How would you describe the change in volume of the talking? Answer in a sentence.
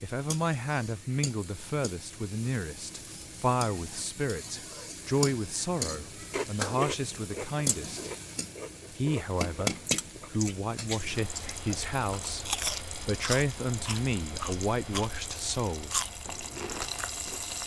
The loudness of the talking stays about the same.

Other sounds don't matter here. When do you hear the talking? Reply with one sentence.
You can hear the talking from 0.0 to 8.1 s and from 8.9 to 15.9 s.